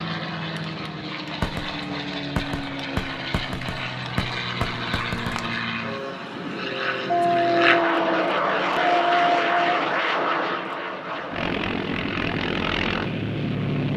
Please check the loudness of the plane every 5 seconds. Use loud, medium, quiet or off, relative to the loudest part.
medium, loud, loud.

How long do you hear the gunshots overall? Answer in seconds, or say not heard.
4 s.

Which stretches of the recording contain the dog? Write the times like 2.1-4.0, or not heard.
7.0-9.8.